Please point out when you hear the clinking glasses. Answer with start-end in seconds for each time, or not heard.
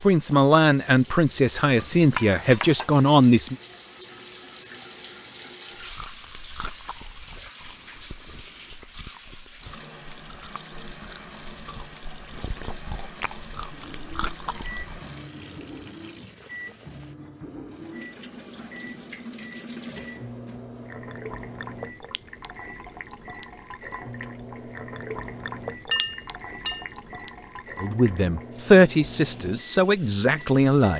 1.8-3.0, 25.9-26.9.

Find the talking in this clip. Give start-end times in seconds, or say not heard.
0.0-3.5, 27.8-30.9.